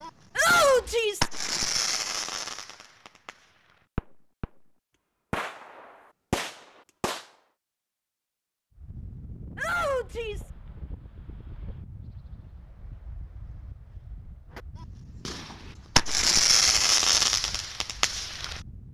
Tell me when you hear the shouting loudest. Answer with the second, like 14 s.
1 s.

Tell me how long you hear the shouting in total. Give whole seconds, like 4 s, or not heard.
2 s.